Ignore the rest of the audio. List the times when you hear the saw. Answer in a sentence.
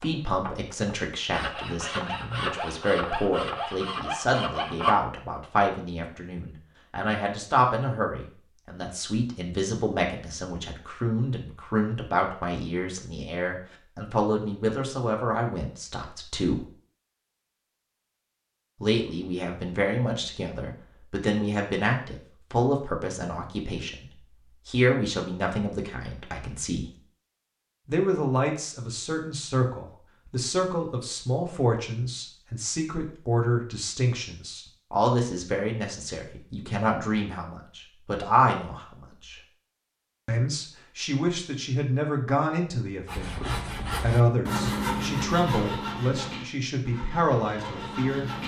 You can hear the saw from 0.0 to 5.0 s and from 43.0 to 48.4 s.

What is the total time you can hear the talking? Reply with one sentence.
The talking can be heard for 44 seconds in total.